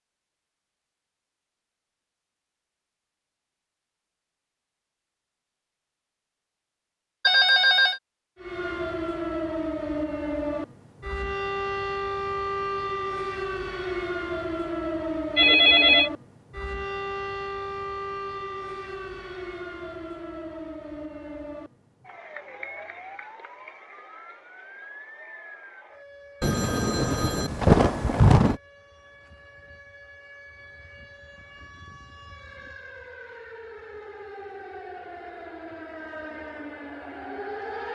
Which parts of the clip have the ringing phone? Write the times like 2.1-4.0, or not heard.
7.2-8.0, 15.3-16.1, 26.4-28.6.